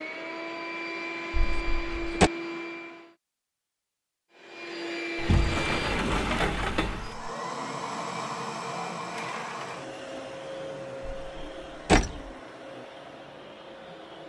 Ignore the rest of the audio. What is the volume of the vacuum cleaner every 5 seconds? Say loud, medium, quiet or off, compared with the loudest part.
loud, loud, medium.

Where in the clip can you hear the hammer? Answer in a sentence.
You can't hear the hammer here.